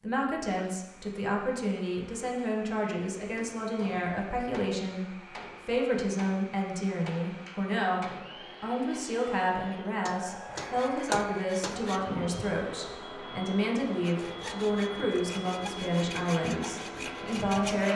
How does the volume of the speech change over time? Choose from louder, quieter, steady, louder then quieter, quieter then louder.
steady.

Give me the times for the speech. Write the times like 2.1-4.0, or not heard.
0.0-17.9.